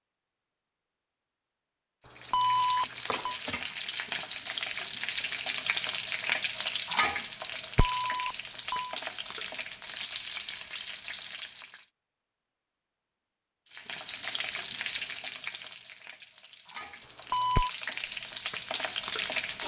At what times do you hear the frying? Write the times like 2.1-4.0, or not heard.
2.0-11.8, 13.7-19.6.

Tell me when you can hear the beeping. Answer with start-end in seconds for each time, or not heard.
2.3-3.4, 7.8-9.0, 17.2-17.7.